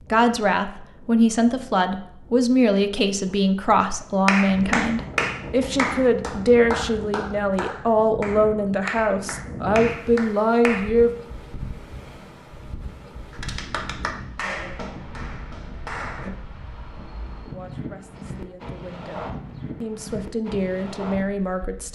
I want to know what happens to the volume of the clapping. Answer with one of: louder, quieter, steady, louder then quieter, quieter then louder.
quieter.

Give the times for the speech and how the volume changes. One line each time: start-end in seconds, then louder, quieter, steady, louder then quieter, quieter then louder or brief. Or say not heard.
0.1-11.1 steady
17.4-21.9 louder.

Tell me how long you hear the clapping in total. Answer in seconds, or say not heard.
10 s.